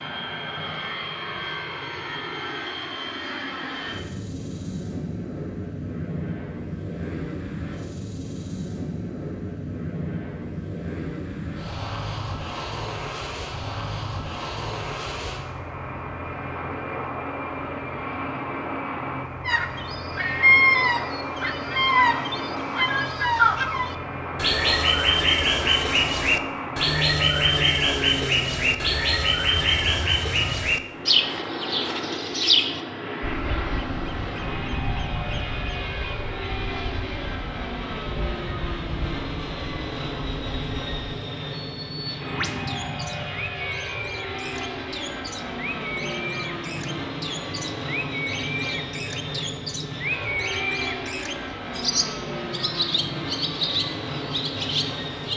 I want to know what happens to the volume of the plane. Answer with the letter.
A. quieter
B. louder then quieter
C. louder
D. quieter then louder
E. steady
E.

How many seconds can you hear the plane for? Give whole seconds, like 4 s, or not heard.
55 s.